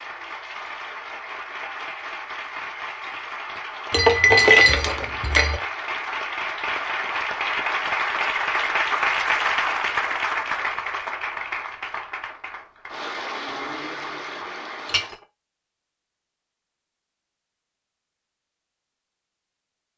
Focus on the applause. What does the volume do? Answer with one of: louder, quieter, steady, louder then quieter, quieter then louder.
louder then quieter.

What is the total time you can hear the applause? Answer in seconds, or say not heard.
15 s.